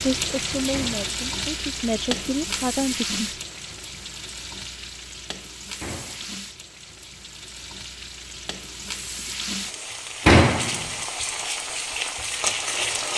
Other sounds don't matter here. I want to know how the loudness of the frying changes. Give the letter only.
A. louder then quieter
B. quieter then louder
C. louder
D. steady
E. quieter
B.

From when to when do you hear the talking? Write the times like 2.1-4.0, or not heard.
0.1-3.2.